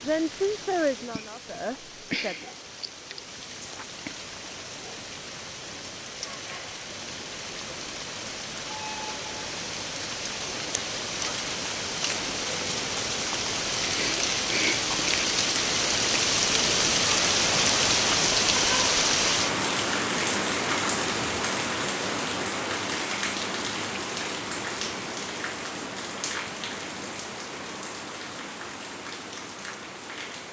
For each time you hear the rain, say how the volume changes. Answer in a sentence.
You can hear the rain from 0.0 to 30.4 s, getting louder then quieter.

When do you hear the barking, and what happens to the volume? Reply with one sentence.
The barking can't be heard in this clip.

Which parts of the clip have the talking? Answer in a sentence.
You can hear the talking from 0.0 to 2.5 s.